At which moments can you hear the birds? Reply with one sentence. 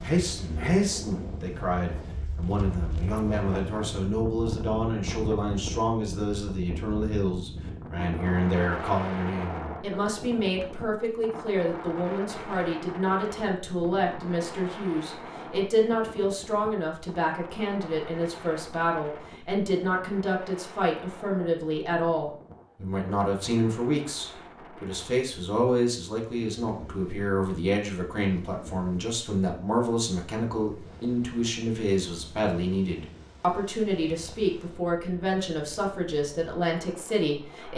The birds can't be heard in this clip.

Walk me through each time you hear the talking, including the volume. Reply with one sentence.
The talking can be heard from 0.0 to 37.7 s, at a steady volume.